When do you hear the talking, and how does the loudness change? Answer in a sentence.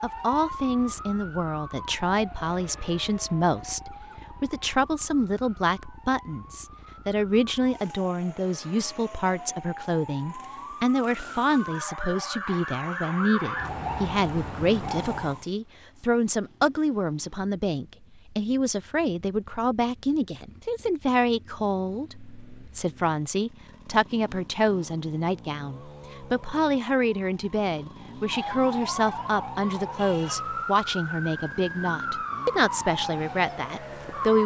The talking can be heard from 0.0 to 34.4 s, at a steady volume.